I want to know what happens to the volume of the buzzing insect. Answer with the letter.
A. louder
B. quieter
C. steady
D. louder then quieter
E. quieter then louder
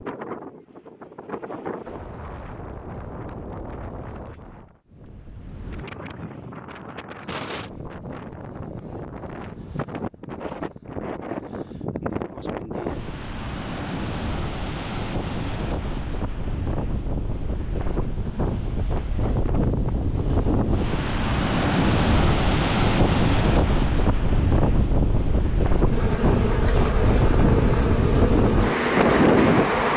C.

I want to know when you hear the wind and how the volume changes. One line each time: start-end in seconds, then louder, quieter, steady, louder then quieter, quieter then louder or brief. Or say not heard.
0.0-29.9 louder.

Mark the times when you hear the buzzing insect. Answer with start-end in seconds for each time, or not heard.
25.9-29.9.